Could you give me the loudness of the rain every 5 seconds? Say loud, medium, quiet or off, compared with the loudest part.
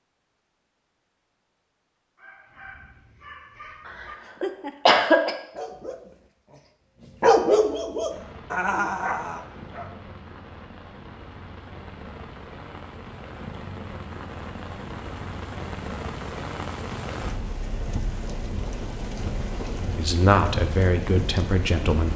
off, medium, medium, loud, loud.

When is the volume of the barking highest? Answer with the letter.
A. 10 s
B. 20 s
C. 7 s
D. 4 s
C.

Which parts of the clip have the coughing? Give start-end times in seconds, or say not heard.
3.9-5.3.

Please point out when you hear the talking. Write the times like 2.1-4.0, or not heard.
19.9-22.1.